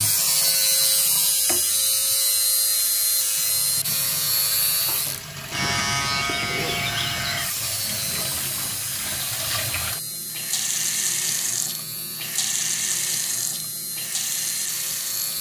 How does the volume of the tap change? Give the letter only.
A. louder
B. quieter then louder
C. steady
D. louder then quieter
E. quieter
A.